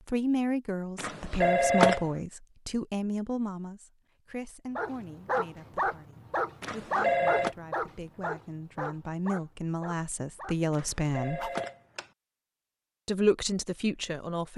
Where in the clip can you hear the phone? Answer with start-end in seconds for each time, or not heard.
0.9-2.0, 6.6-7.5, 10.7-12.1.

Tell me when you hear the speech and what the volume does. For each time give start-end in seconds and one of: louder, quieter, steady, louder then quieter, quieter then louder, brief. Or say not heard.
0.1-11.4 quieter then louder
13.1-14.5 brief.